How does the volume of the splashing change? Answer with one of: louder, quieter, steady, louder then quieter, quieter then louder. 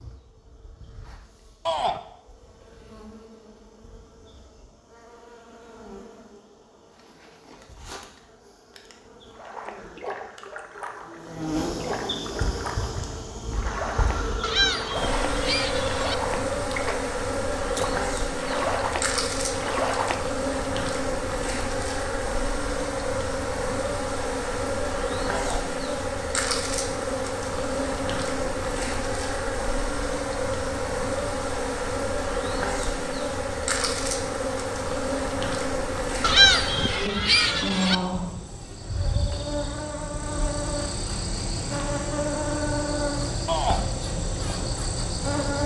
louder.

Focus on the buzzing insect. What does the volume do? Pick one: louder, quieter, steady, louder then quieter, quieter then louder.
louder.